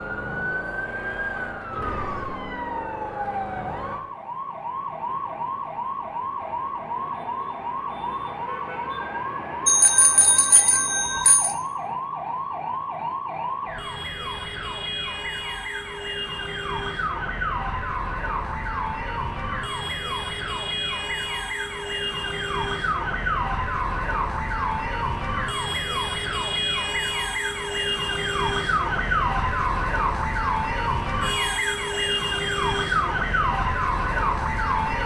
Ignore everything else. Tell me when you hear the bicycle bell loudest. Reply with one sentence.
The loudest moment of the bicycle bell is at 10 seconds.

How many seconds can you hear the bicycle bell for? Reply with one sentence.
You can hear the bicycle bell for 2 seconds altogether.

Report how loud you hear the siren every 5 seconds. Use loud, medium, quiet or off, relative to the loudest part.
medium, medium, medium, medium, loud, loud, loud.